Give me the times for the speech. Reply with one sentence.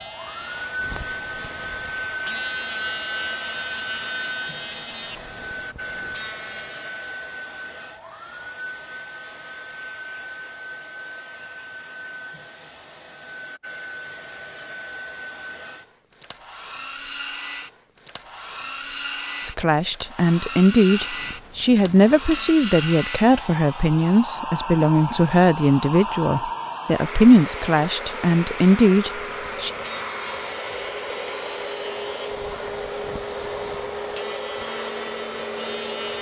The speech can be heard from 19.4 to 29.7 s.